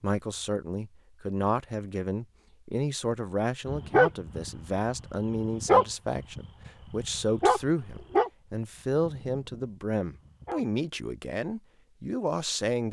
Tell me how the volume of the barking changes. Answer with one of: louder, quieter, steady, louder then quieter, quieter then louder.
louder then quieter.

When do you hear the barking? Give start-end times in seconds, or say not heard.
3.6-10.7.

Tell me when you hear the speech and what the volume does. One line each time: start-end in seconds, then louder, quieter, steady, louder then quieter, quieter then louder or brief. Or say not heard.
0.0-12.8 steady.